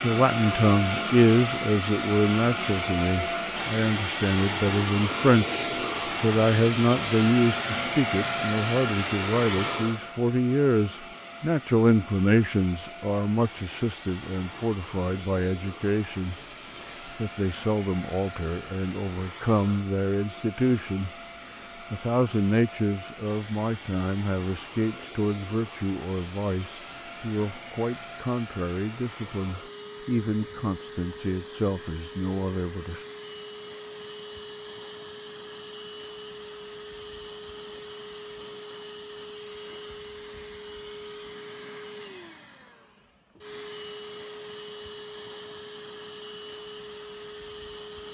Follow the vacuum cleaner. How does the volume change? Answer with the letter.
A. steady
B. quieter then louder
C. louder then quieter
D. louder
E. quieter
E.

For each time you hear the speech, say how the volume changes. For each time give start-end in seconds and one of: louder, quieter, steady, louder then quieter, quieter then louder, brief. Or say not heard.
0.0-33.0 quieter.